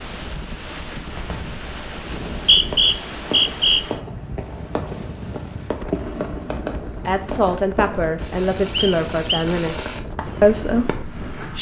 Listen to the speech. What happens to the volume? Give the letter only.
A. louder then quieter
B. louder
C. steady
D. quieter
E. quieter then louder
E.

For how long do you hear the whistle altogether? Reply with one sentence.
The whistle can be heard for 2 seconds in total.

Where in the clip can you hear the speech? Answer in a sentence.
You can hear the speech from 7.0 to 11.5 s.